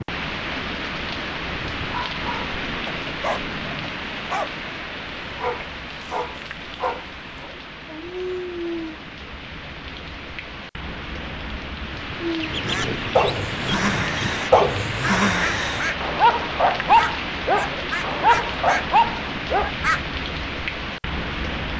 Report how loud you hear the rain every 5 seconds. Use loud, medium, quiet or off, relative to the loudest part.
loud, medium, loud, loud, loud.